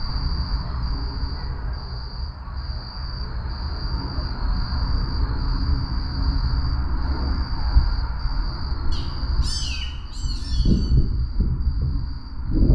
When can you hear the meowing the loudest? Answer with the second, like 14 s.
10 s.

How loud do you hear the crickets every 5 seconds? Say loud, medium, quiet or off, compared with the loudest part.
medium, medium, loud.